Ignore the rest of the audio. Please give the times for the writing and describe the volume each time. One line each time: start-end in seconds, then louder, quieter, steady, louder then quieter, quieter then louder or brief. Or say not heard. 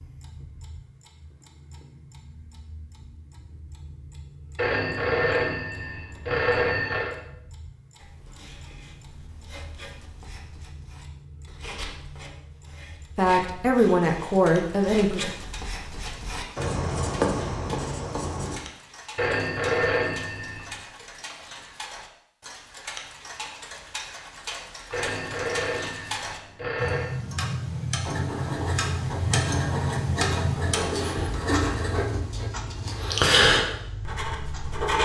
8.0-18.6 louder
28.0-35.0 louder.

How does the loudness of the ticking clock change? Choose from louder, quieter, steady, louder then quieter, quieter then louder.
louder.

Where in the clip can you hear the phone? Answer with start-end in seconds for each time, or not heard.
4.5-7.2, 19.1-20.8, 24.9-27.1.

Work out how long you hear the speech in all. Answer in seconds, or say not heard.
2 s.